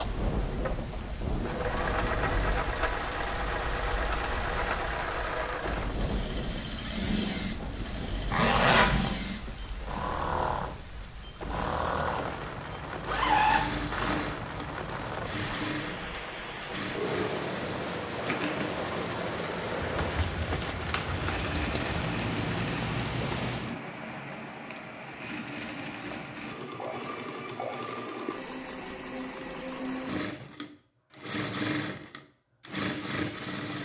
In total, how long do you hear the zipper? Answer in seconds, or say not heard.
2 s.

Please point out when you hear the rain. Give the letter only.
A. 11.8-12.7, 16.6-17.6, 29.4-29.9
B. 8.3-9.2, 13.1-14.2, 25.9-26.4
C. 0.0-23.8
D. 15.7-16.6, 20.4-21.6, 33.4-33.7
C.